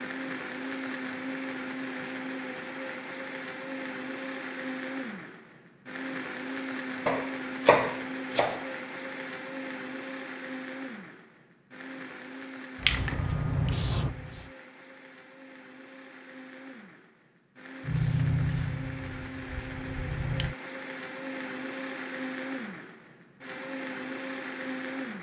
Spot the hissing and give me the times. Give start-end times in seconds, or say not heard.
12.8-14.6, 17.8-20.6.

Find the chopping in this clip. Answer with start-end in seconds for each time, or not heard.
7.0-8.7.